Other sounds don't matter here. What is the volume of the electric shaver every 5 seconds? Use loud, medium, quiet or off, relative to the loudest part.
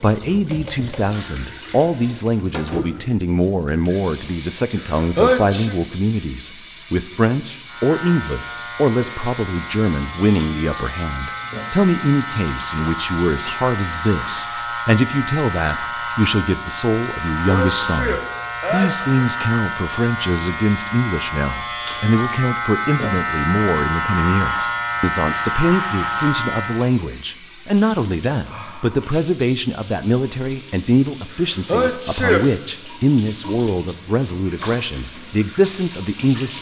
off, medium, medium, loud, loud, loud, off, off.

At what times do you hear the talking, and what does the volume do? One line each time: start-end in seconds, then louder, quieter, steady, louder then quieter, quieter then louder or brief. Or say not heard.
0.0-36.5 steady.